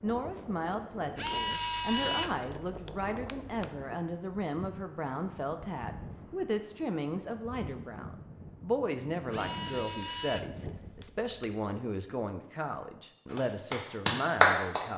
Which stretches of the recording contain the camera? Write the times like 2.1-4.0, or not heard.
1.1-3.7, 9.3-11.8.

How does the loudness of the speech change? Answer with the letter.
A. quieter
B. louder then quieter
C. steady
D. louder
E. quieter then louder
C.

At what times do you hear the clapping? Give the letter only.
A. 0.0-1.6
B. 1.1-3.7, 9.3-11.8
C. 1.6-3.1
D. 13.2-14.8
D.